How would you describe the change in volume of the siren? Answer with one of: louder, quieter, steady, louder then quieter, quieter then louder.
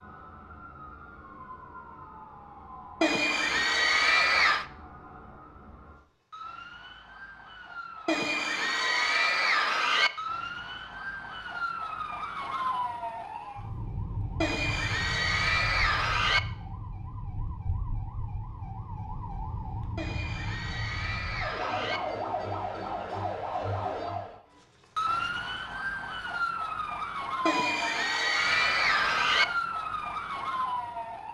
louder.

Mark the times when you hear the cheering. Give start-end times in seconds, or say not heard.
3.0-4.7, 8.1-10.1, 14.4-16.4, 19.9-22.0, 27.4-29.4.